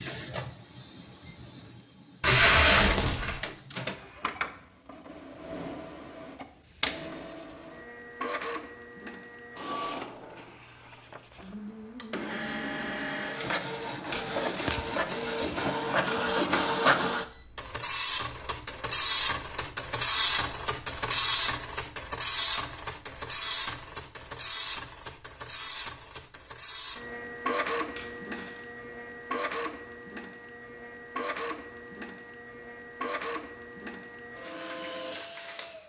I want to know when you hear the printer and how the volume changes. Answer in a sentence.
The printer can be heard from 0.0 to 35.8 s, getting louder then quieter.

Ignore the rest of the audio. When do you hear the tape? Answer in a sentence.
You can hear the tape from 2.2 to 3.4 s, from 14.1 to 14.8 s and from 27.9 to 28.6 s.